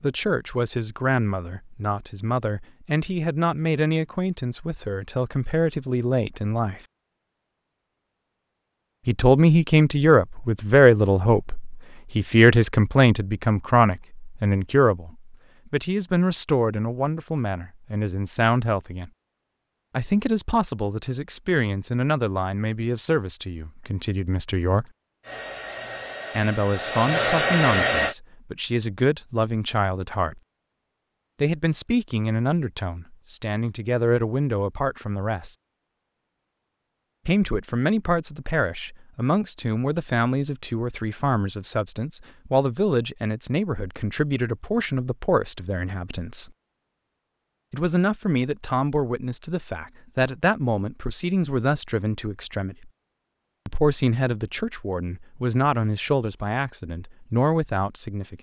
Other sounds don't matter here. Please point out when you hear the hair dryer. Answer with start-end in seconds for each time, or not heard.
25.2-28.1.